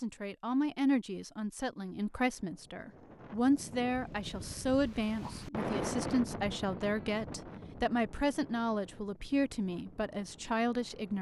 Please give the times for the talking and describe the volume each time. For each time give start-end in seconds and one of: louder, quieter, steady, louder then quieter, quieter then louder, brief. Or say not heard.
0.0-11.1 steady.